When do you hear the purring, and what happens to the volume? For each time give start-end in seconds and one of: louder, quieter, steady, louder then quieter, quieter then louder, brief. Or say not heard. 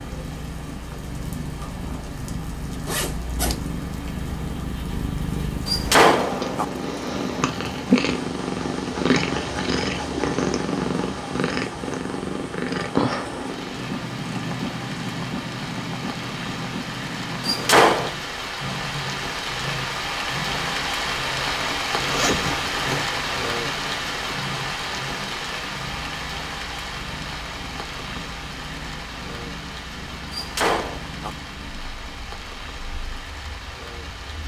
0.0-34.4 louder then quieter.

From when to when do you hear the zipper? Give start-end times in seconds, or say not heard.
2.9-3.6, 22.0-23.0.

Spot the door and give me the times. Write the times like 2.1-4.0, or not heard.
5.7-6.7, 17.4-18.1, 30.3-31.3.